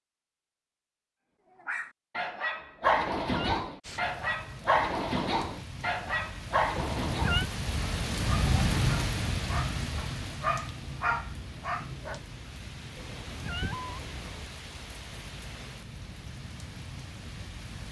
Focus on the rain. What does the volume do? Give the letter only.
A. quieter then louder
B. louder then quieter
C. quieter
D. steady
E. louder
B.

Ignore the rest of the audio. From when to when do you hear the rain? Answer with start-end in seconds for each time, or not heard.
3.8-17.8.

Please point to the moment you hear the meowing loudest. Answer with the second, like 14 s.
7 s.